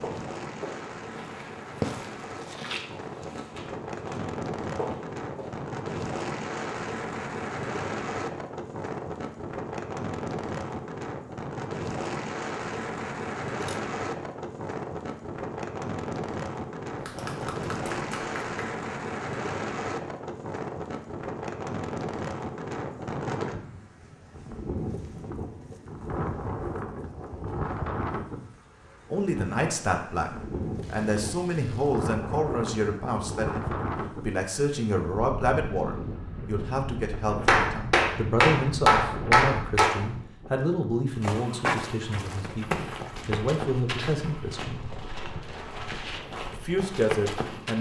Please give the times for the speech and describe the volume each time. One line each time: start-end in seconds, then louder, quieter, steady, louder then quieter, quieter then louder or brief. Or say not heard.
29.1-44.8 steady
46.5-47.7 brief.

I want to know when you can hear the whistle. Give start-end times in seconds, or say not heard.
not heard.